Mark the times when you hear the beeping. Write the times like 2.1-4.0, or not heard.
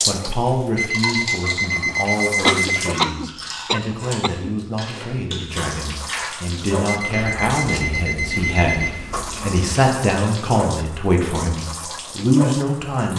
0.8-2.9, 6.8-9.0.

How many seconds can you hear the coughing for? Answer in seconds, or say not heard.
2 s.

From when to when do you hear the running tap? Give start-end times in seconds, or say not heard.
0.0-3.0, 5.5-13.1.